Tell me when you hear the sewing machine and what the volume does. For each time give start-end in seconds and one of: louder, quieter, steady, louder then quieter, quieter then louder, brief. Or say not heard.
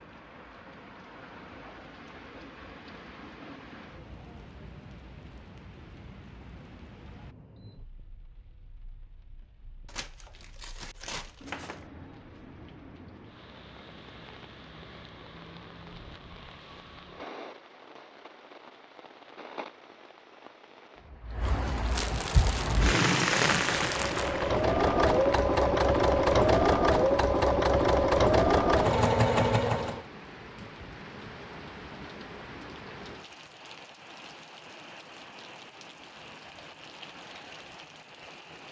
22.4-30.1 louder.